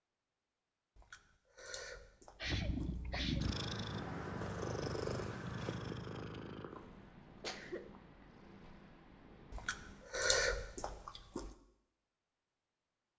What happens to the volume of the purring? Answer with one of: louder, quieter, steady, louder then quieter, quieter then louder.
quieter.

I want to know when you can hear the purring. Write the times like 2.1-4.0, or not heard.
2.4-10.1.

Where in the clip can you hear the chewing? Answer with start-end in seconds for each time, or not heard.
0.9-3.5, 9.5-11.6.